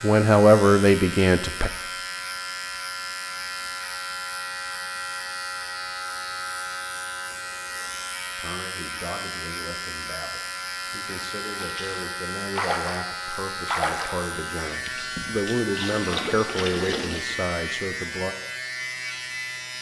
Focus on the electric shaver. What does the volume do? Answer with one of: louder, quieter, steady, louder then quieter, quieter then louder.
steady.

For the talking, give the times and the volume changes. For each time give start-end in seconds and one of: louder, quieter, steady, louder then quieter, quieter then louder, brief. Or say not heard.
0.0-1.7 brief
8.3-18.4 louder.